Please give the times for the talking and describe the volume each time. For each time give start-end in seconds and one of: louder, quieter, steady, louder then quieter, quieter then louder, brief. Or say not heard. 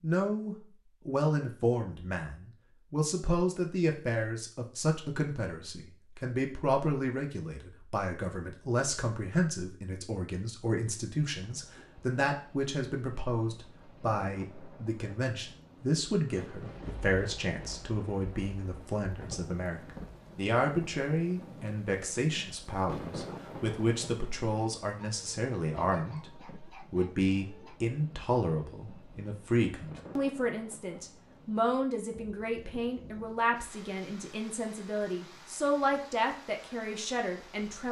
0.0-37.8 steady.